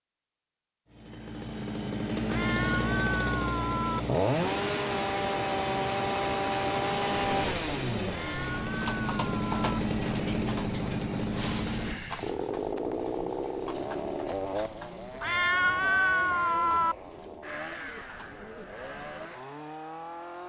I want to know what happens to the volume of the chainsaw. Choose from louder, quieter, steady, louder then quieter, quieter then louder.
quieter.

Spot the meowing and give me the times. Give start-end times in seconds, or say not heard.
2.2-4.0, 8.1-9.8, 15.2-16.9.